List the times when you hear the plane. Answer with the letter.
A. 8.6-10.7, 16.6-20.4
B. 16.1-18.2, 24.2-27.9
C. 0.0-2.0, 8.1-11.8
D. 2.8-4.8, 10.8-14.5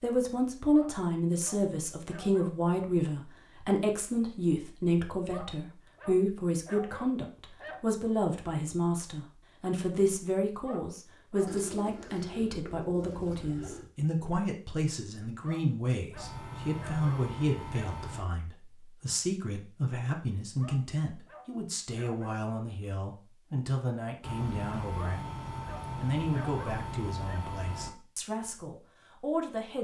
B.